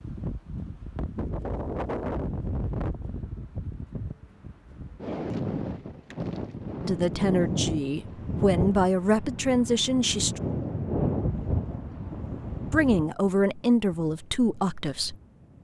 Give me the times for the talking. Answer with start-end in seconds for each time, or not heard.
6.8-10.4, 12.7-15.2.